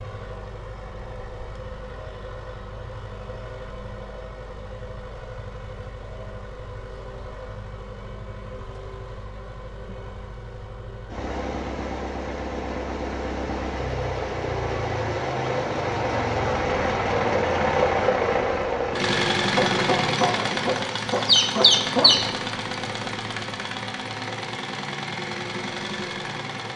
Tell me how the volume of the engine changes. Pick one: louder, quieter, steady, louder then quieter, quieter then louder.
louder then quieter.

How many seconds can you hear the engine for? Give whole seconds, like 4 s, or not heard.
27 s.